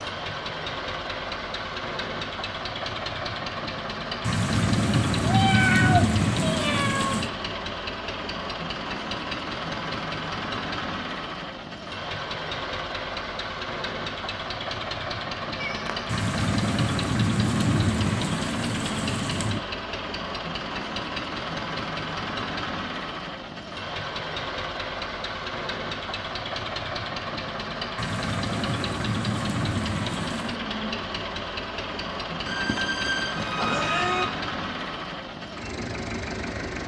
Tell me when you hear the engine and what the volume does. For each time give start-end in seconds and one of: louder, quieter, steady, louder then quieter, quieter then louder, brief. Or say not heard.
0.0-36.8 steady.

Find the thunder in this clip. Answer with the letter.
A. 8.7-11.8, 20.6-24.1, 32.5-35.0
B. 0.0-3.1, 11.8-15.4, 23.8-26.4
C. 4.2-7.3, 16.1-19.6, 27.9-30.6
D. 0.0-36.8
C.